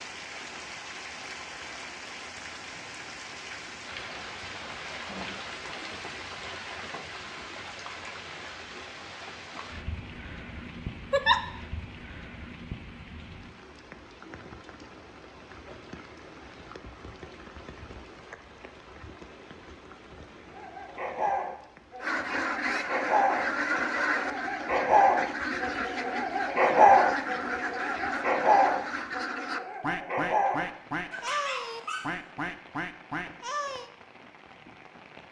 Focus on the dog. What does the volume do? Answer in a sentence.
The loudness of the dog goes up, then down.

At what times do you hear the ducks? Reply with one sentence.
The ducks can be heard from 22.0 to 33.9 s.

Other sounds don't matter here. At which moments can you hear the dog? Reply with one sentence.
The dog can be heard from 20.5 to 32.1 s.